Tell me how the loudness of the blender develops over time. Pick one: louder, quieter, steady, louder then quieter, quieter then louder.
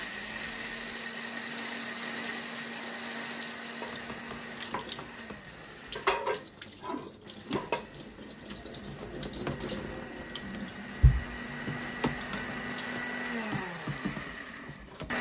quieter then louder.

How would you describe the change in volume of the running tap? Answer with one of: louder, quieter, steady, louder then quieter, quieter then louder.
louder then quieter.